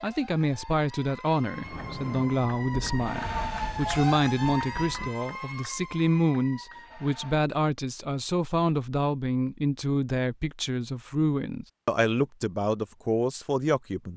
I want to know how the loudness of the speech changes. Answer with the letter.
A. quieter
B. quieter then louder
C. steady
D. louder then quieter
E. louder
C.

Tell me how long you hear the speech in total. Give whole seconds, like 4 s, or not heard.
14 s.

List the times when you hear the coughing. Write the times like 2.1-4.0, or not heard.
not heard.